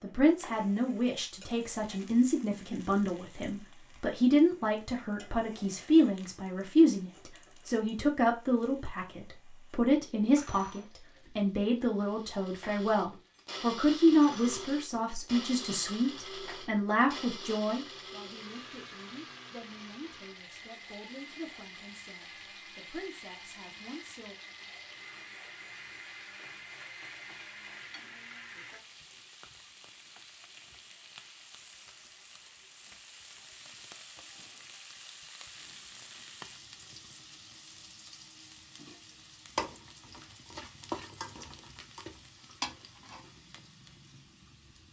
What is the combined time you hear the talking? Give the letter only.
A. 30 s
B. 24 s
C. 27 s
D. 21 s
B.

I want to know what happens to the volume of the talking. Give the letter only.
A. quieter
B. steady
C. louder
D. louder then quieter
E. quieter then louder
A.